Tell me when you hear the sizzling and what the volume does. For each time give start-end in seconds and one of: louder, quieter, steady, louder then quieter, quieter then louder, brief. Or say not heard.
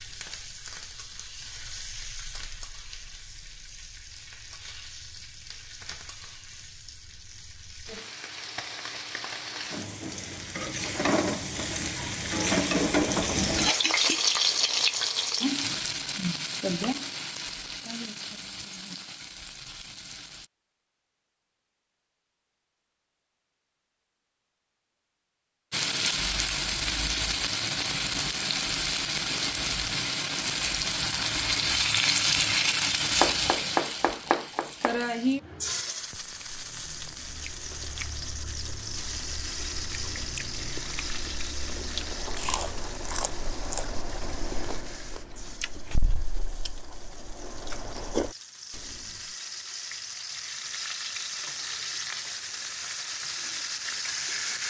0.0-20.5 louder then quieter
25.7-54.6 quieter then louder.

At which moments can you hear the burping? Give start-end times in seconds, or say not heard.
not heard.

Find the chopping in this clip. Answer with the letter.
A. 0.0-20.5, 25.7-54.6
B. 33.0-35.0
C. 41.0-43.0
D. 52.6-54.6
B.